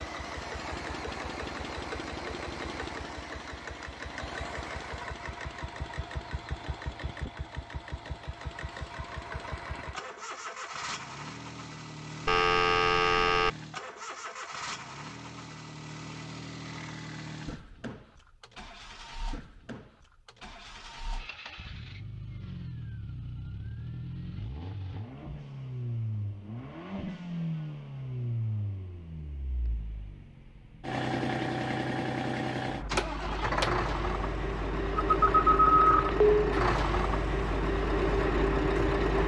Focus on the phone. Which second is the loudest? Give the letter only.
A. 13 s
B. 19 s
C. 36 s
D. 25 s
C.